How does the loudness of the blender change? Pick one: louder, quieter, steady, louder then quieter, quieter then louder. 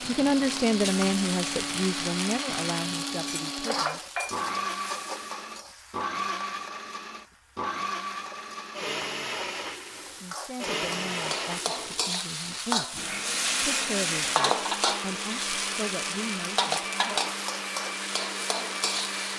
steady.